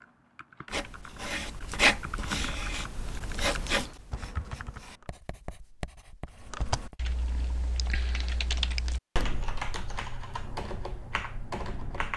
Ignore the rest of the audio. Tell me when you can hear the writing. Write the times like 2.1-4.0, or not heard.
0.7-7.0.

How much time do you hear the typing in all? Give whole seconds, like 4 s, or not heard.
11 s.